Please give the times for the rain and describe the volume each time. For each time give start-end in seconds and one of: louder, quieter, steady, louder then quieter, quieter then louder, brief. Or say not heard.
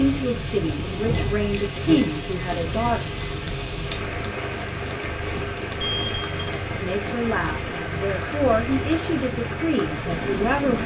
0.0-10.8 steady.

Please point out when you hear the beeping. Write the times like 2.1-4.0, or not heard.
1.1-3.4, 5.8-6.5.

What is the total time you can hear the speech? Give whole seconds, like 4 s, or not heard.
7 s.